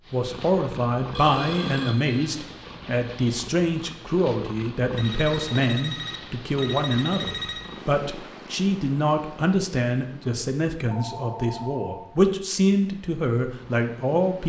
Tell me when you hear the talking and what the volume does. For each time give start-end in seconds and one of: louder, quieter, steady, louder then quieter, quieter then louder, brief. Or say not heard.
0.1-14.4 steady.